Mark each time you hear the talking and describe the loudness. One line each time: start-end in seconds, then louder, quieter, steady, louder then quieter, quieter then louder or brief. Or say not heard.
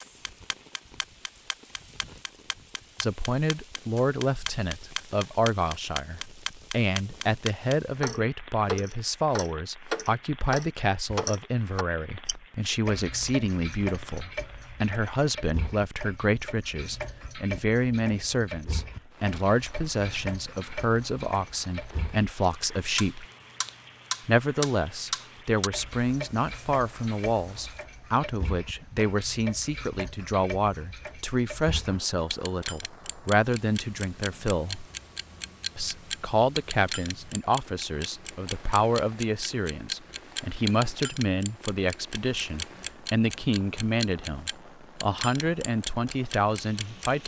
3.0-23.2 steady
24.2-34.9 steady
35.8-47.2 steady.